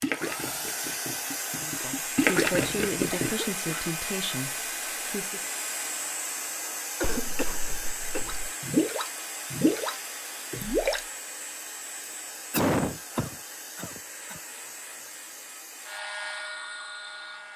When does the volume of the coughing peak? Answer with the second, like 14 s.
13 s.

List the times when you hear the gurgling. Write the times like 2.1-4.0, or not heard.
0.0-3.3, 8.2-11.1.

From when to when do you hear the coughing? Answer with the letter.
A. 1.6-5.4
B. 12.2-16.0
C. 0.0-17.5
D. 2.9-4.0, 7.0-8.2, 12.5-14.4
D.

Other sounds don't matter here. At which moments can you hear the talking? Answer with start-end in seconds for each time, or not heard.
1.6-5.4.